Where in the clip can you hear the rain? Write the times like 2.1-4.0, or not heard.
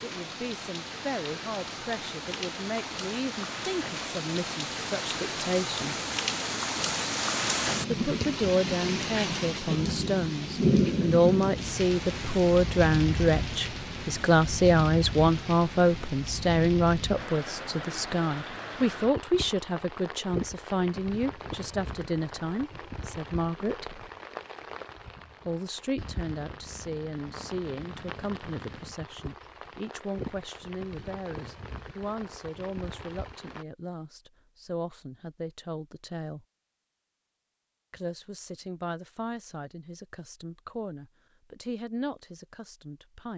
0.0-33.6.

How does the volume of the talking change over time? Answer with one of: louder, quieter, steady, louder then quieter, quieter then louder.
louder then quieter.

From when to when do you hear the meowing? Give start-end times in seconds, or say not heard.
not heard.